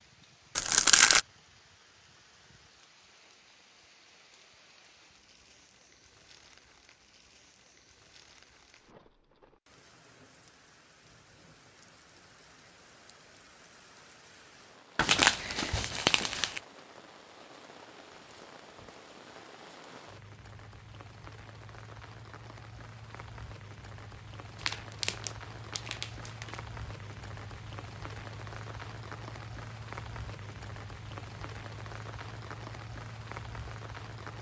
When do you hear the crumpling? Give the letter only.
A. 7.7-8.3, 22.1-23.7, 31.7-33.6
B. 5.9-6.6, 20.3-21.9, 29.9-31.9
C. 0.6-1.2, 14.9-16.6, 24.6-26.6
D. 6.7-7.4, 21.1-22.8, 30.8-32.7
C.